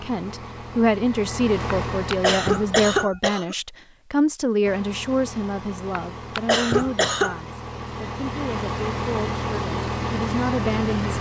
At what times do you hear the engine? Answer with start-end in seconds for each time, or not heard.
0.0-3.1, 4.6-11.1.